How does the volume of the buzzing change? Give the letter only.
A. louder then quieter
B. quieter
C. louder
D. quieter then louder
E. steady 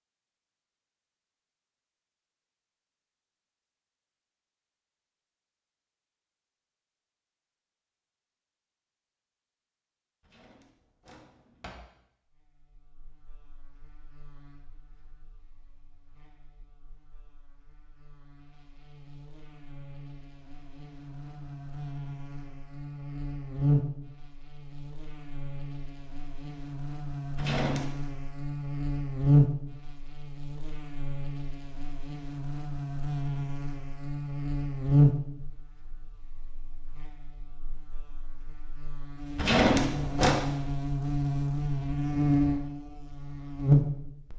C.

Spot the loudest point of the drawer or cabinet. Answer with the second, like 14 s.
40 s.